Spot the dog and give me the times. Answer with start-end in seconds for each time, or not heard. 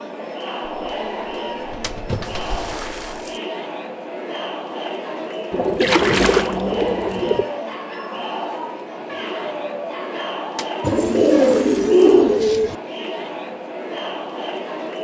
7.3-11.5.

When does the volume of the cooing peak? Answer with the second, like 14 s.
12 s.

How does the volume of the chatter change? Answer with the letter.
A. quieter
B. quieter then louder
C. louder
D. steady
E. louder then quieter
D.